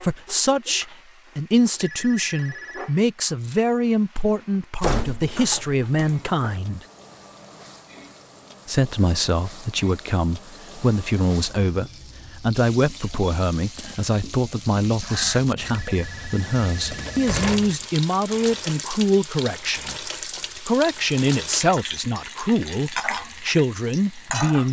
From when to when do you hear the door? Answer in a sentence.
You can hear the door from 4.8 to 6.5 s and from 16.9 to 17.9 s.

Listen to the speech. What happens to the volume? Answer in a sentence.
The loudness of the speech stays about the same.